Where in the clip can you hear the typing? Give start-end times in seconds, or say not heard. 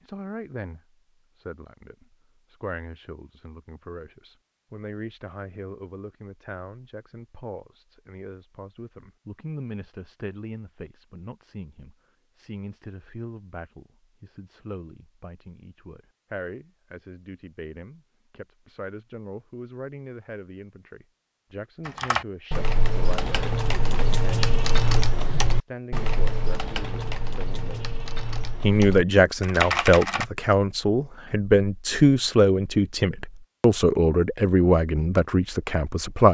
21.9-30.2.